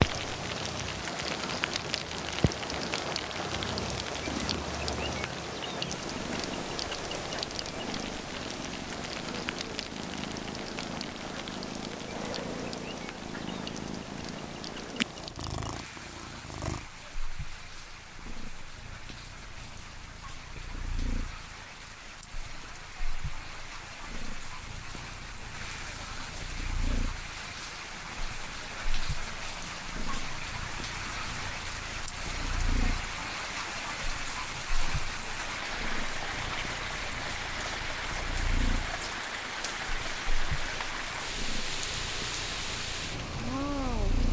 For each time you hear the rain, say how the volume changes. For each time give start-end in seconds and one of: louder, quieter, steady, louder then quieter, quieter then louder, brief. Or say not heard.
0.0-44.2 quieter then louder.